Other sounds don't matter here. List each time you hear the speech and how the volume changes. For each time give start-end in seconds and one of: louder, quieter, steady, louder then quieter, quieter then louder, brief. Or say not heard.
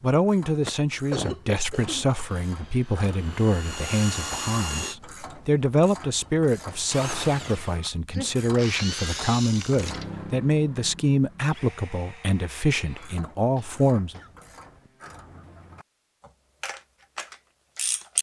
0.0-14.2 steady.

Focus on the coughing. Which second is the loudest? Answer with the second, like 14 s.
1 s.